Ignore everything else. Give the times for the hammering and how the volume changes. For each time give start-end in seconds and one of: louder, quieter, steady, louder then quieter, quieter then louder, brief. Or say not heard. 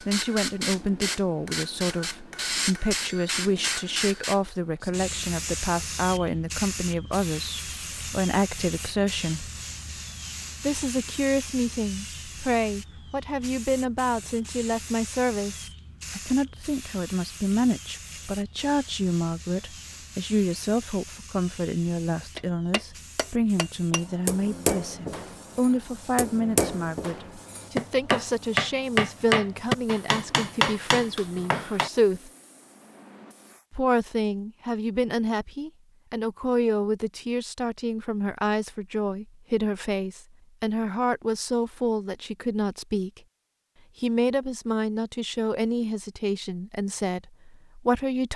0.0-4.4 steady
22.4-31.9 louder then quieter.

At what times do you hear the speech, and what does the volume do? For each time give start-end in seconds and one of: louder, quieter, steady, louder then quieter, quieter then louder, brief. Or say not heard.
0.1-9.5 steady
10.6-32.3 steady
33.7-43.2 steady
44.0-48.3 steady.